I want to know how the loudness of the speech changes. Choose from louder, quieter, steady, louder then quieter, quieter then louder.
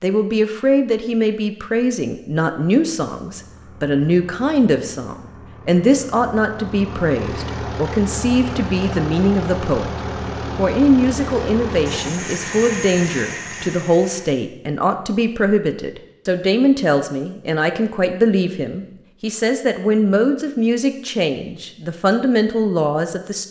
steady.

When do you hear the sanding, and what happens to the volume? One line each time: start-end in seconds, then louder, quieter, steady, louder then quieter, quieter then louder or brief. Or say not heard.
not heard.